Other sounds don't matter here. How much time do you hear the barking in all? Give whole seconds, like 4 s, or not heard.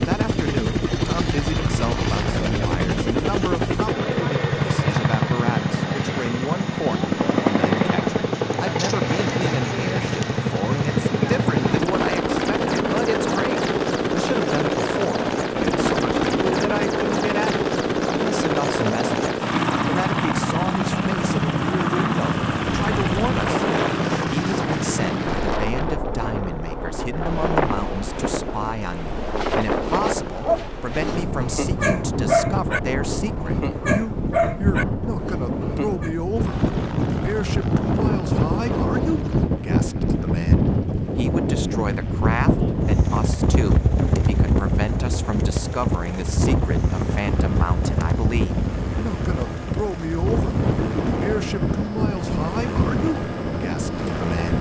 6 s.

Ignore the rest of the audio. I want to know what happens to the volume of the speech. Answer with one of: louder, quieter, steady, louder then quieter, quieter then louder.
steady.